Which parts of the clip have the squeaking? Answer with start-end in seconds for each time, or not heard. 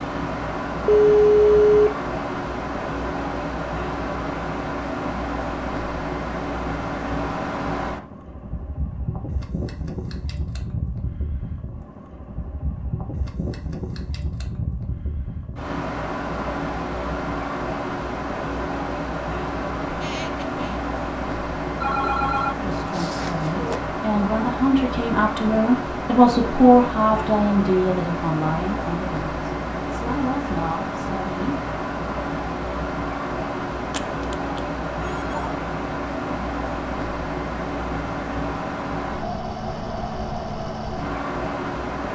19.9-20.8.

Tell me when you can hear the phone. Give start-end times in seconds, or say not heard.
0.8-1.9, 21.8-23.8, 33.9-35.5.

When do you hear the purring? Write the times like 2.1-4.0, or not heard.
not heard.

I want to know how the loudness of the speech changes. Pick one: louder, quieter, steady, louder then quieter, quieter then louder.
louder then quieter.